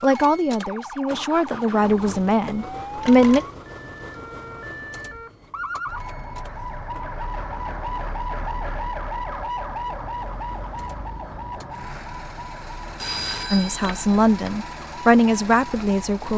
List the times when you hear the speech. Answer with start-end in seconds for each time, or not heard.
0.0-3.5, 13.5-16.3.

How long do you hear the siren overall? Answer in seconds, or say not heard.
16 s.